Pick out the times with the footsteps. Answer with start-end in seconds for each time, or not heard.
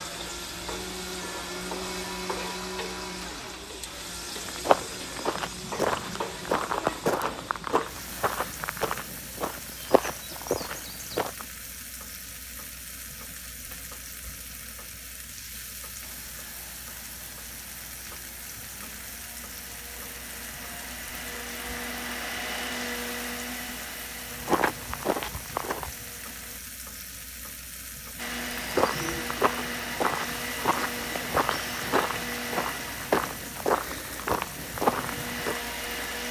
4.3-11.4, 24.3-25.9, 28.5-35.6.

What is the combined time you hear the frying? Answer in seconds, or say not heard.
36 s.